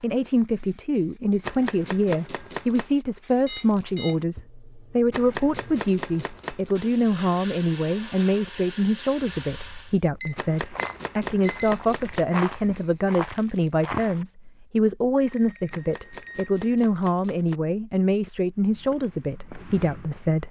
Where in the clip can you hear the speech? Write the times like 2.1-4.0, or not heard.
0.0-20.4.